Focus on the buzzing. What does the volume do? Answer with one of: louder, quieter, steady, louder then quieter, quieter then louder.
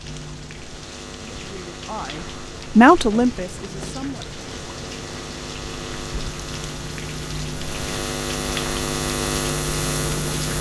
louder.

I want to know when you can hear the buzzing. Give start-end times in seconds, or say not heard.
0.0-10.5.